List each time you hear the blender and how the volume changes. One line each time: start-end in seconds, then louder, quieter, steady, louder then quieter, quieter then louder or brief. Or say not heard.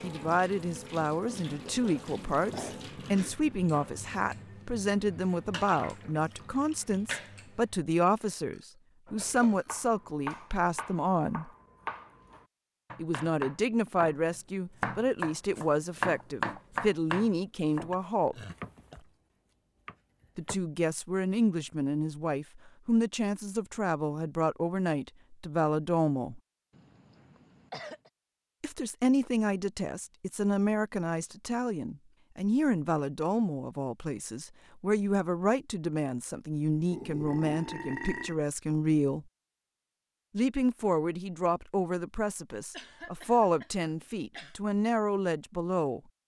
not heard.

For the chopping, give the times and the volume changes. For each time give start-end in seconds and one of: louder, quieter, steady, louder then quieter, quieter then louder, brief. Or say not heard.
9.1-19.1 louder then quieter
19.9-20.6 brief.